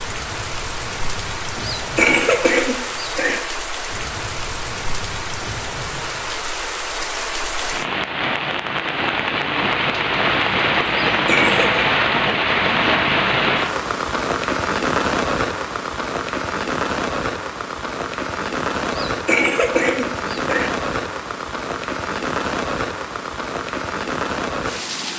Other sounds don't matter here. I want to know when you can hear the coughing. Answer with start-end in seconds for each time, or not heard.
1.6-3.4, 11.1-11.8, 19.1-20.7.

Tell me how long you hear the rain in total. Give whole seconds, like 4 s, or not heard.
25 s.